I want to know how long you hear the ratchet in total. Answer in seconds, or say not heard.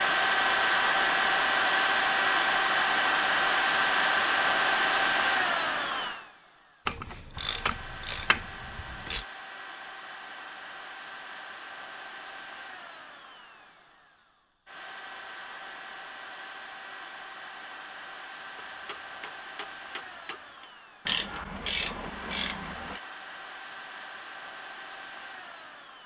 4 s.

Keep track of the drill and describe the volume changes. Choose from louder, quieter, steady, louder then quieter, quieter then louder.
quieter.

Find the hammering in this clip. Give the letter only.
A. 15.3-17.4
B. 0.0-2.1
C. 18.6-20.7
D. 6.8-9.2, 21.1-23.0
C.